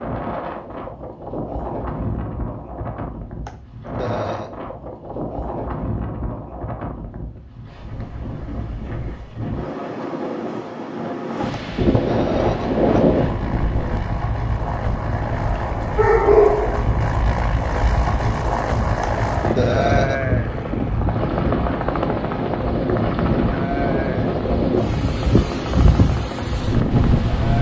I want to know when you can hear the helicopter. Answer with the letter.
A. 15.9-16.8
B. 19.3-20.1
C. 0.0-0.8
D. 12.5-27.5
D.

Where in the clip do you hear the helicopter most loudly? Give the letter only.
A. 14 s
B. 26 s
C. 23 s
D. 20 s
D.